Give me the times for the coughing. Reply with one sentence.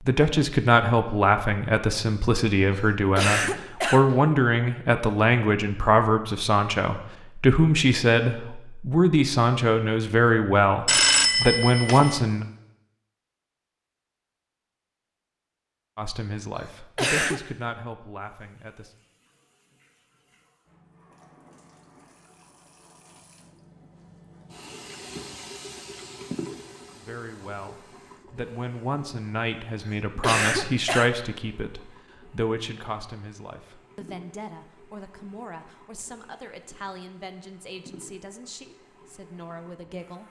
The coughing can be heard from 2.8 to 4.2 s, from 16.6 to 17.4 s and from 29.8 to 31.1 s.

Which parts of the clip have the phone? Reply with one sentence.
The phone can be heard from 10.8 to 12.2 s.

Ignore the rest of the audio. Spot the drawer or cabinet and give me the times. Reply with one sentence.
You can't hear the drawer or cabinet here.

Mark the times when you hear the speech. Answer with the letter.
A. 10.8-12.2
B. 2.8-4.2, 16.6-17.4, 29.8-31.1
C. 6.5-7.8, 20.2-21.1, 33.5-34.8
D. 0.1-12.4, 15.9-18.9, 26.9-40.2
D.